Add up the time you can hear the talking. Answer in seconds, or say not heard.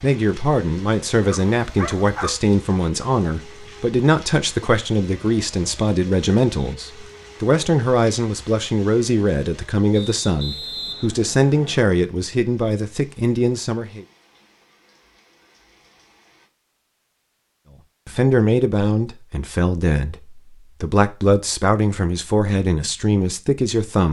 20 s.